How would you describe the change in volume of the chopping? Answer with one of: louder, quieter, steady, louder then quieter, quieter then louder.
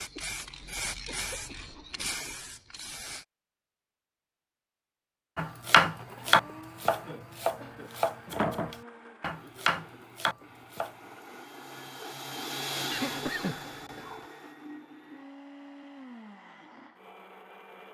quieter then louder.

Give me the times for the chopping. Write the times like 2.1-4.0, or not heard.
5.3-10.9.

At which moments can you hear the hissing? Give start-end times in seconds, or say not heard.
0.0-3.2.